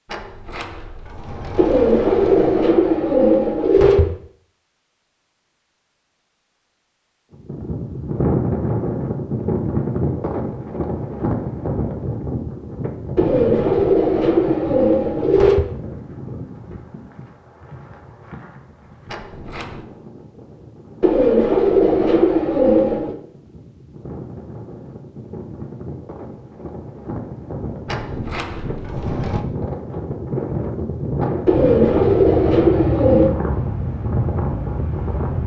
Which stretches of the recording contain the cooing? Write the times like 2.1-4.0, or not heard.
1.6-4.1, 13.2-15.7, 21.0-23.1, 31.4-33.4.